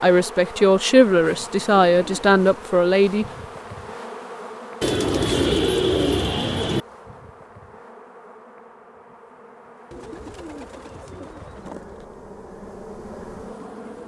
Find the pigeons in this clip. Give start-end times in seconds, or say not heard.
1.1-2.4, 4.8-6.8, 9.9-11.8.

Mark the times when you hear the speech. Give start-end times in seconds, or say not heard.
0.0-3.2.